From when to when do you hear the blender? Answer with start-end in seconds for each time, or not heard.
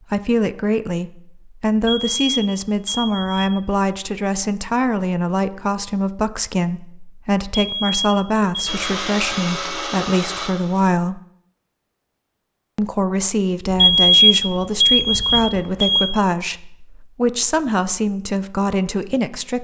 8.7-10.9.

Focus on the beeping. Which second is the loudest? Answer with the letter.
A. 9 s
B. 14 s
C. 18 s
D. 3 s
B.